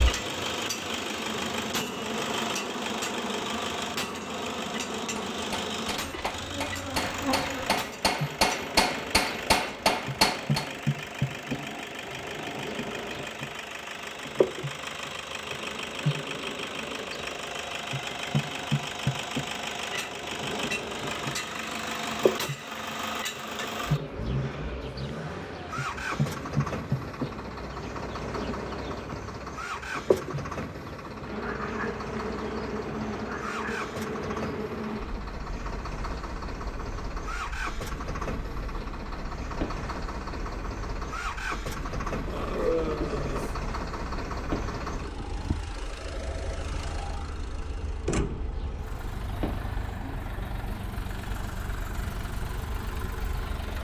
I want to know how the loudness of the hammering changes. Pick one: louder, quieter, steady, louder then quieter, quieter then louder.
louder.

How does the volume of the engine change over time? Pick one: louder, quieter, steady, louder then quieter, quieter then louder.
steady.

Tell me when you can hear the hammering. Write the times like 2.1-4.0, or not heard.
5.2-10.7.